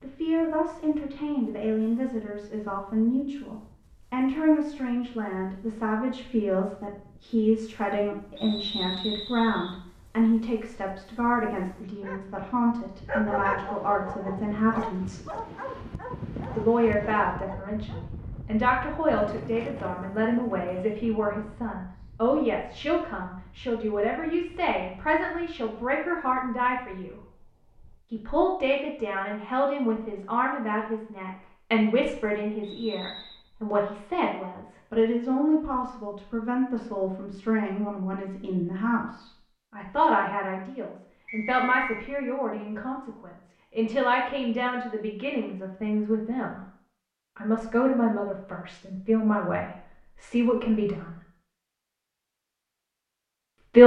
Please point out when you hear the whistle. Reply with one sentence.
You can hear the whistle from 8.3 to 9.8 s, from 32.6 to 33.4 s and from 41.2 to 42.1 s.